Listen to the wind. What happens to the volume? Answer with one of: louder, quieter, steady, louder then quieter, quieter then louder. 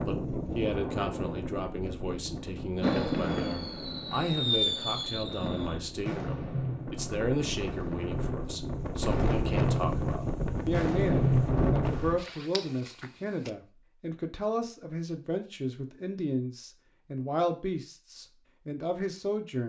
quieter then louder.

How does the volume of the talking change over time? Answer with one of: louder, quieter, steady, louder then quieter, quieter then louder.
steady.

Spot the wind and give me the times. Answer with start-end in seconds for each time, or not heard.
0.0-12.2.